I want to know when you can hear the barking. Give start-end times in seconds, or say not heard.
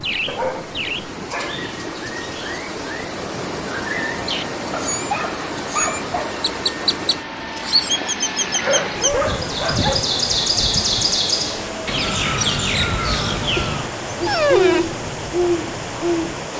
0.2-1.6, 4.7-6.3, 8.6-10.1, 13.6-14.9.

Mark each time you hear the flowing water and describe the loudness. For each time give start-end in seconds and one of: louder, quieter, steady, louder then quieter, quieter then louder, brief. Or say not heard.
0.0-16.5 steady.